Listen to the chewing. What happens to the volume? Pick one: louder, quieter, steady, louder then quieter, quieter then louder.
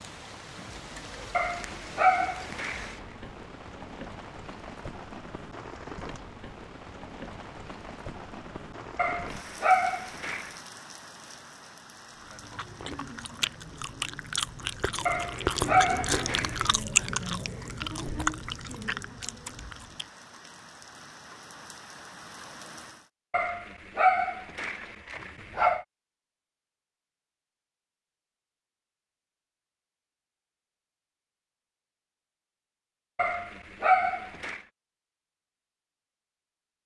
louder then quieter.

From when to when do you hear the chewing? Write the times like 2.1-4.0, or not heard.
12.2-20.1.